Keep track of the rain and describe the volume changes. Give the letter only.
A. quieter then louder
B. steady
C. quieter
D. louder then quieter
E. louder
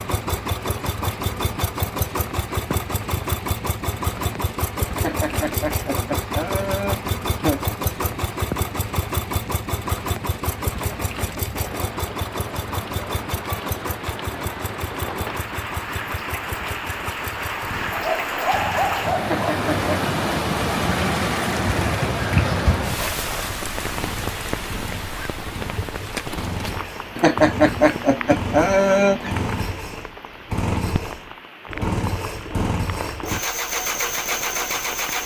D.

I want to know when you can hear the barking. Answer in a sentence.
The barking can be heard from 17.9 to 19.4 s.